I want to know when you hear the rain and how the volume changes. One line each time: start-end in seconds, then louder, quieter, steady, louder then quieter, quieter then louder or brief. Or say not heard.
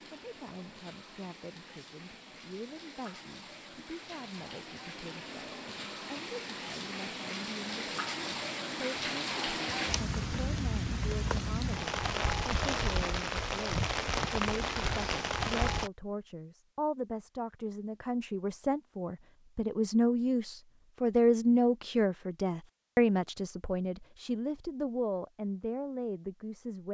0.0-15.9 louder.